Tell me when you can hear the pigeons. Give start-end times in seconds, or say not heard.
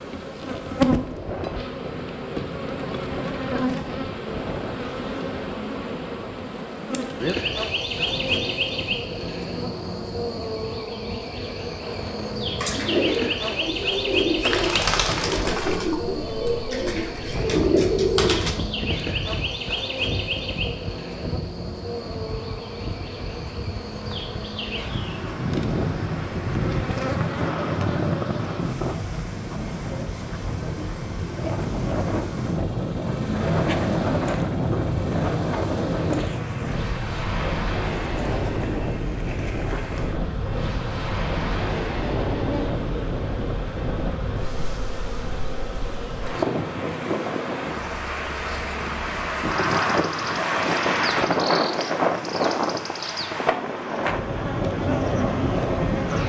12.6-18.6.